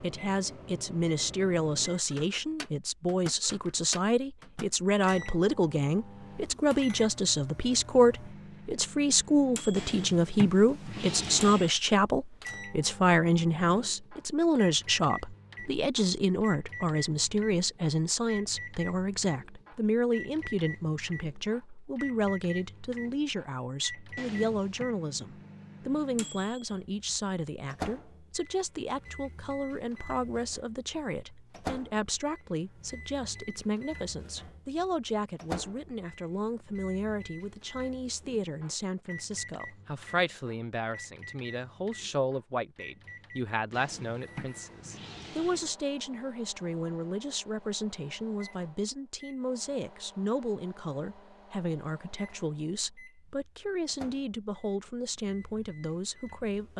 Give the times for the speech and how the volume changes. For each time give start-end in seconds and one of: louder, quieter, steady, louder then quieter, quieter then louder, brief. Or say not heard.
0.0-56.7 quieter.